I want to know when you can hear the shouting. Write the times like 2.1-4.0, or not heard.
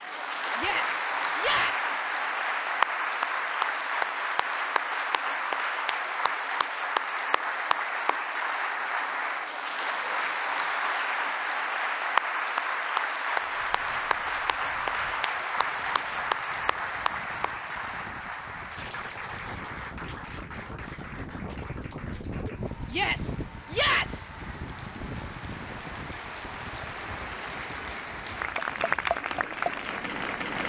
0.6-1.9, 22.9-24.3.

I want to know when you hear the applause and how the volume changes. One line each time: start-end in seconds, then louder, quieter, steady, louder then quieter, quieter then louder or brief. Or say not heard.
0.0-30.6 quieter then louder.